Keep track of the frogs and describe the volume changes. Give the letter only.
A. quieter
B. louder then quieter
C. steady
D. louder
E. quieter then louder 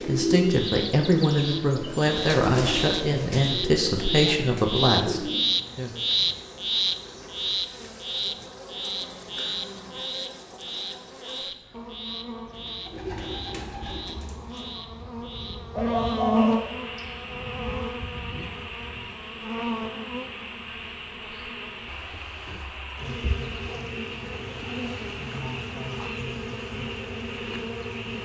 A.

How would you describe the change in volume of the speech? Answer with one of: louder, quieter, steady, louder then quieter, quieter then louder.
steady.